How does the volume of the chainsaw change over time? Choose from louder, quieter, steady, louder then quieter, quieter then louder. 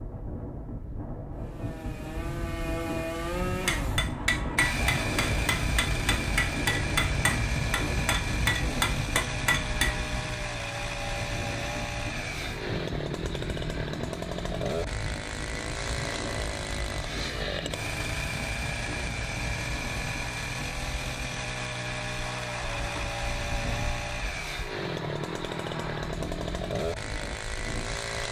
steady.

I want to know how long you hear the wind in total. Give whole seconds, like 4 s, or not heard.
28 s.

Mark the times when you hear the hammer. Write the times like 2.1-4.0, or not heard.
3.6-10.0.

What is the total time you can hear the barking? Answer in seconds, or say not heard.
not heard.